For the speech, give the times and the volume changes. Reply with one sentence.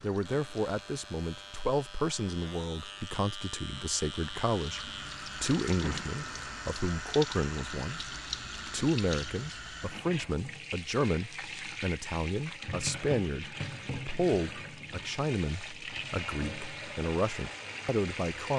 You can hear the speech from 0.0 to 18.5 s, at a steady volume.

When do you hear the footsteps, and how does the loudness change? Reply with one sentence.
The footsteps can't be heard in this clip.